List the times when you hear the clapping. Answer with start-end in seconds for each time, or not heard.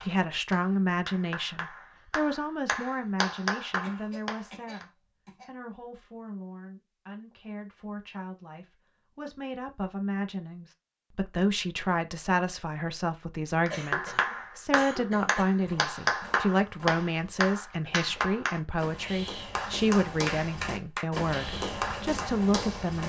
0.0-4.8, 13.7-22.4.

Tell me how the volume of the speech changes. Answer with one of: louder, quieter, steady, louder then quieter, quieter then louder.
quieter then louder.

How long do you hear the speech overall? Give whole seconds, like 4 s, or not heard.
23 s.